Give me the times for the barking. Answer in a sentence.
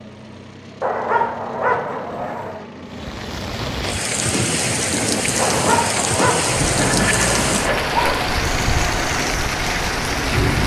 The barking can be heard from 0.8 to 2.6 s and from 5.3 to 8.3 s.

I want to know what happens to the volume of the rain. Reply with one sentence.
The loudness of the rain stays about the same.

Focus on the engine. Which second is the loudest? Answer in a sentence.
The loudest moment of the engine is at 7 seconds.